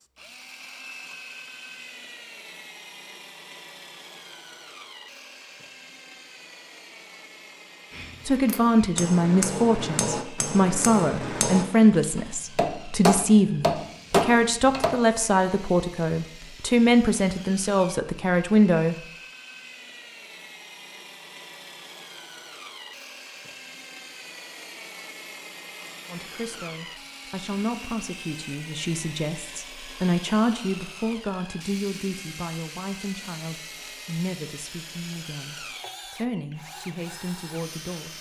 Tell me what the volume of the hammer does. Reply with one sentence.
The volume of the hammer goes up.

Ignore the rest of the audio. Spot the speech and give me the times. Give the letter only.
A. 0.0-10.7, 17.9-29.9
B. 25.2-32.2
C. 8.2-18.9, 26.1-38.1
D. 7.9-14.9
C.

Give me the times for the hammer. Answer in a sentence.
You can hear the hammer from 7.9 to 14.9 s.